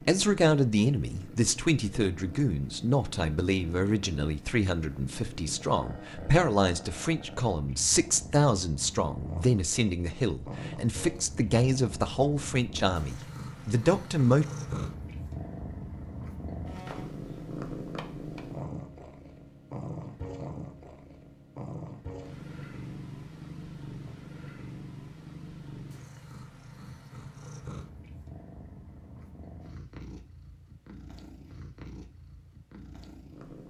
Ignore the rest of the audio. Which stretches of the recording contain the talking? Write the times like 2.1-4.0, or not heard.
0.0-14.4.